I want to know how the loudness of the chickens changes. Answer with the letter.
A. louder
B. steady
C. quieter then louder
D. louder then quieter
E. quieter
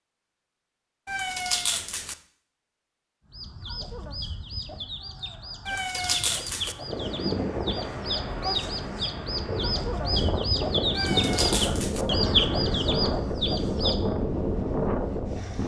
A.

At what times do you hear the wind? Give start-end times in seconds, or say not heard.
6.8-15.6.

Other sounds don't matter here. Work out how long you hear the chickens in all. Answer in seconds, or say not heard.
11 s.